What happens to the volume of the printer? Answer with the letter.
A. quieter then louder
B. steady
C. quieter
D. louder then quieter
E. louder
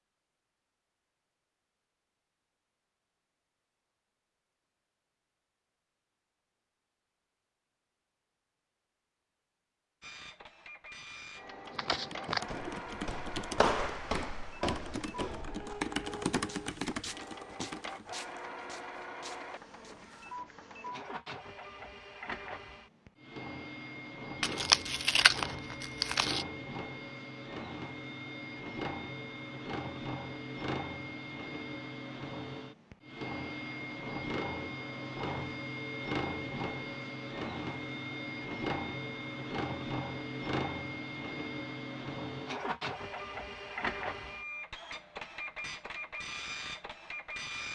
E.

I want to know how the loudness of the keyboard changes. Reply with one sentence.
The volume of the keyboard goes up, then down.